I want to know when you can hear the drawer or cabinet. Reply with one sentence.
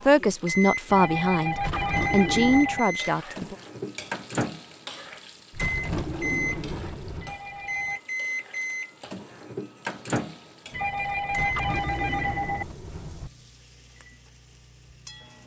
The drawer or cabinet can be heard from 1.6 to 2.7 s, from 5.5 to 7.3 s and from 11.3 to 13.3 s.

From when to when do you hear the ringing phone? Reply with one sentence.
The ringing phone can be heard from 0.8 to 2.8 s, from 7.2 to 8.0 s and from 10.7 to 12.7 s.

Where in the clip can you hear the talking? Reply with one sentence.
The talking can be heard from 0.0 to 3.5 s.